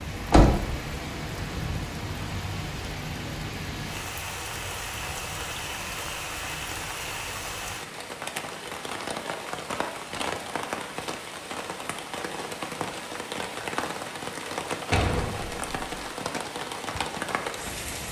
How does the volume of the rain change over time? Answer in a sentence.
The loudness of the rain stays about the same.